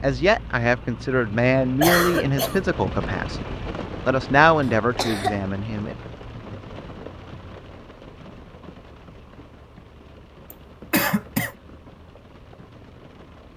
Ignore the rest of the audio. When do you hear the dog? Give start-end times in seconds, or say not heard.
not heard.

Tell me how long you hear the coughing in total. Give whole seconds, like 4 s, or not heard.
2 s.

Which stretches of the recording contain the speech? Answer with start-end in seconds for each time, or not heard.
0.0-6.0.